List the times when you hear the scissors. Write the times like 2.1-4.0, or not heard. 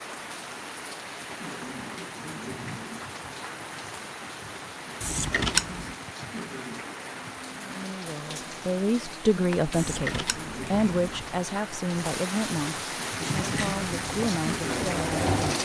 5.0-6.0, 9.7-11.2.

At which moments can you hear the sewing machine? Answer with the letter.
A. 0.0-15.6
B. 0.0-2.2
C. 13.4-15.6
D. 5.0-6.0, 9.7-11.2
C.